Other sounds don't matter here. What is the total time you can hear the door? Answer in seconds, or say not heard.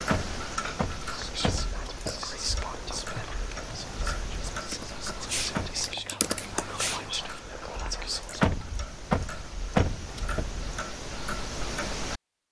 5 s.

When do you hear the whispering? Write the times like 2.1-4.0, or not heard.
1.1-8.6.